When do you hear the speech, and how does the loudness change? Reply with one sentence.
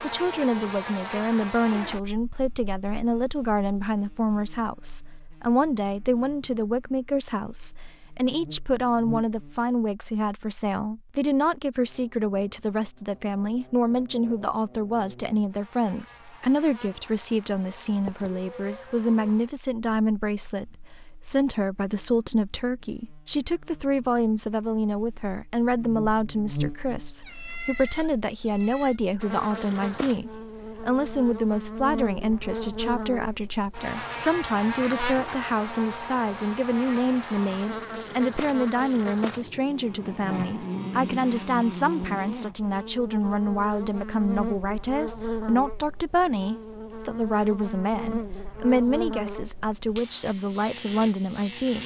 You can hear the speech from 0.0 to 51.8 s, at a steady volume.